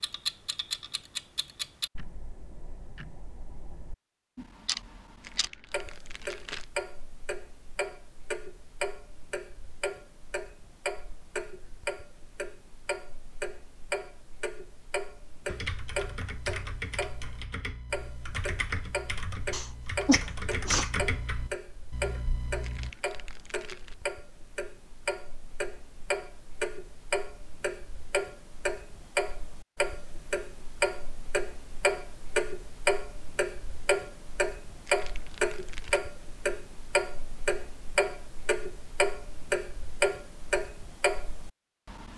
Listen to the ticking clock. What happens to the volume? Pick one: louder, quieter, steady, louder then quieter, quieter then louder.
louder.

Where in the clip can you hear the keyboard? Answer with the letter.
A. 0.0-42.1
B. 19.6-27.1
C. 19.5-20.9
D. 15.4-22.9
D.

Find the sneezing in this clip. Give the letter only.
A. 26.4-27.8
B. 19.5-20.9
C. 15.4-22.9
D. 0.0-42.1
B.